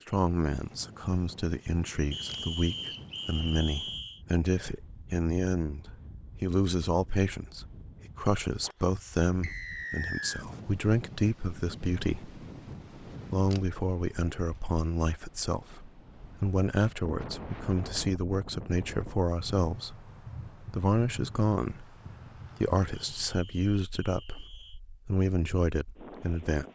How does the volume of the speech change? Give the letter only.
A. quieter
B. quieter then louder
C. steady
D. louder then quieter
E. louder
C.